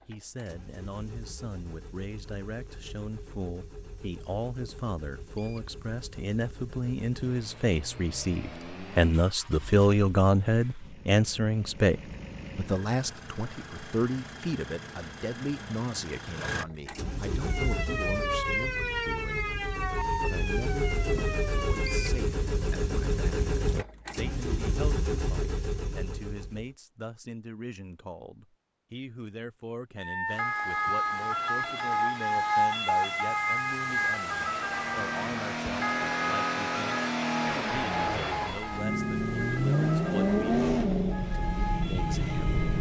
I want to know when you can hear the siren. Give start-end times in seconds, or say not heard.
17.4-22.2, 29.9-42.7.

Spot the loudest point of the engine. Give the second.
40 s.